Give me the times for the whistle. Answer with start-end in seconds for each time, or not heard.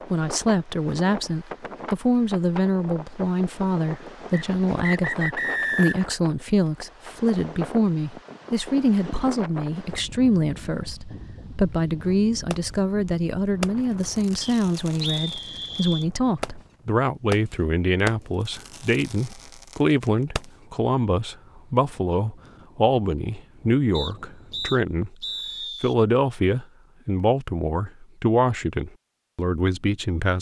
4.3-6.0, 14.4-16.1, 23.9-25.9.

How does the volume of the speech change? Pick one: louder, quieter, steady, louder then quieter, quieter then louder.
steady.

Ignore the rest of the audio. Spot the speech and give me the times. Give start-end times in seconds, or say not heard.
0.1-25.1, 25.8-30.3.